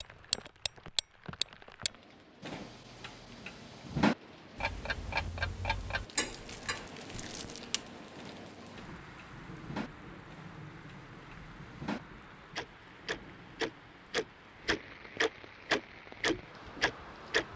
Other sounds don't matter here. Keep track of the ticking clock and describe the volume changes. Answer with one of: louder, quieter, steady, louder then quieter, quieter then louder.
quieter then louder.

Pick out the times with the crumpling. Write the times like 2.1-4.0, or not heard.
6.2-7.6.